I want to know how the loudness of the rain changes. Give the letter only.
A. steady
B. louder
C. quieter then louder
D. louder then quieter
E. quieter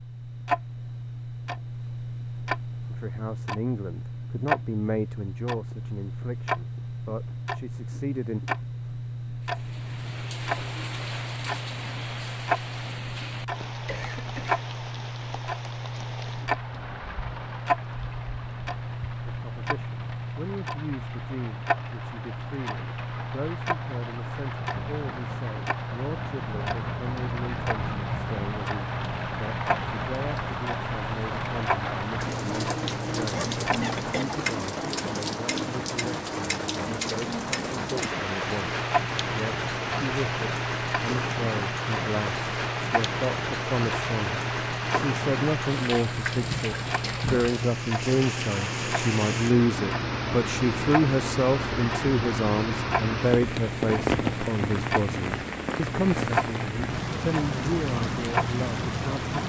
B.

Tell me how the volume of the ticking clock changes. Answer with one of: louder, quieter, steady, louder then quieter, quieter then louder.
steady.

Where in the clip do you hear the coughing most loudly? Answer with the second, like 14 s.
34 s.